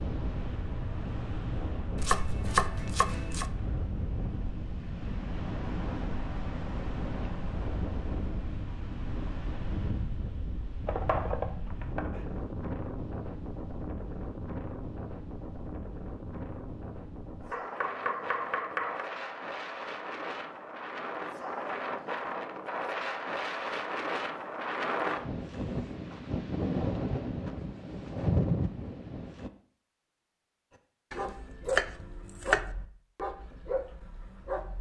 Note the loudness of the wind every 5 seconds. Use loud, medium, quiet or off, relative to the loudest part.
medium, medium, medium, medium, loud, loud, off.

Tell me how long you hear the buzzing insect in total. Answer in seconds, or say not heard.
not heard.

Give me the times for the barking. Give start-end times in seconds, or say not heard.
31.1-34.7.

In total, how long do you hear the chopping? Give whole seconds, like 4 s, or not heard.
6 s.